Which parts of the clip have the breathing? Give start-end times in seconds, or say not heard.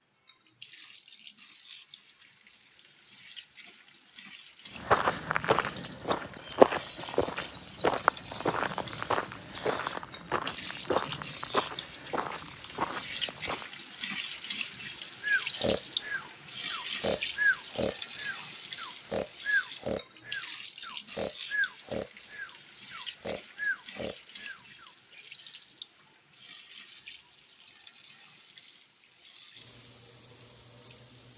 15.2-24.9.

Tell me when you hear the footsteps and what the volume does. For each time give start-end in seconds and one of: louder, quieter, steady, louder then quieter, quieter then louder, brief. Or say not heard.
4.8-13.7 quieter.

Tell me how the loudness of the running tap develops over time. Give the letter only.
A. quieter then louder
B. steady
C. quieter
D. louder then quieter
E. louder
D.